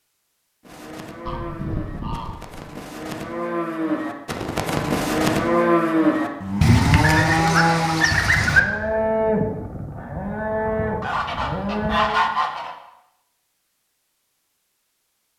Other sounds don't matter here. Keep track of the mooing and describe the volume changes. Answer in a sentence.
The loudness of the mooing goes up, then down.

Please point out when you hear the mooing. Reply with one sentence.
The mooing can be heard from 0.6 to 12.2 s.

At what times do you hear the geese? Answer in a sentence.
The geese can be heard from 1.2 to 2.6 s, from 6.6 to 8.6 s and from 11.0 to 12.8 s.